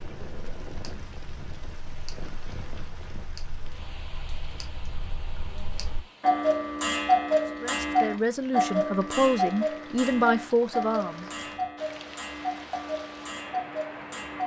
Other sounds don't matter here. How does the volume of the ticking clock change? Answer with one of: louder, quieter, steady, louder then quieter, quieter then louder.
louder then quieter.